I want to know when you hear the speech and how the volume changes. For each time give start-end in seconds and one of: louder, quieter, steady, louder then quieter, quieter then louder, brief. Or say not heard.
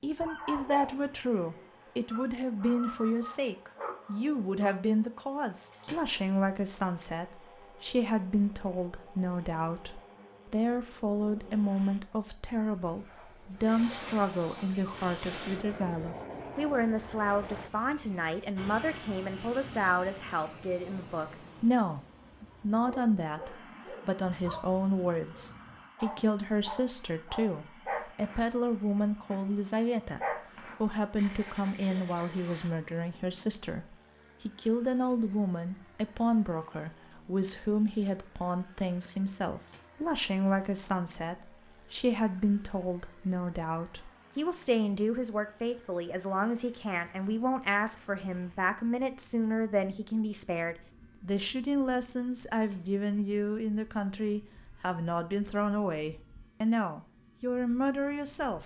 0.0-30.2 steady
30.8-58.6 steady.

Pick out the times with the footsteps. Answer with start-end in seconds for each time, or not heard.
not heard.